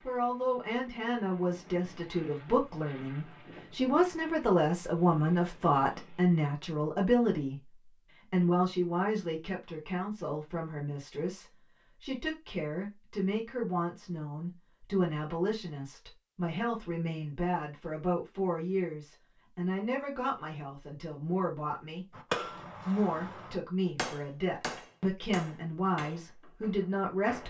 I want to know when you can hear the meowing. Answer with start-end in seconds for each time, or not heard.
not heard.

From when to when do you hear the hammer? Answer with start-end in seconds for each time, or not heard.
22.1-27.4.